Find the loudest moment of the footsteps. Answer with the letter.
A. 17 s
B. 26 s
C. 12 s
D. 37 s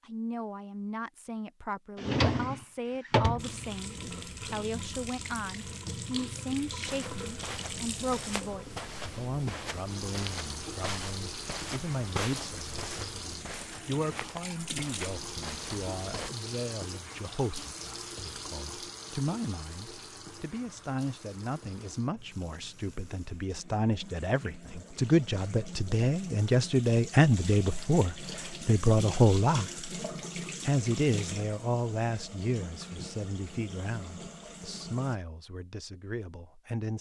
C.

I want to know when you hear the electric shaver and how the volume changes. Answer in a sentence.
You can't hear the electric shaver here.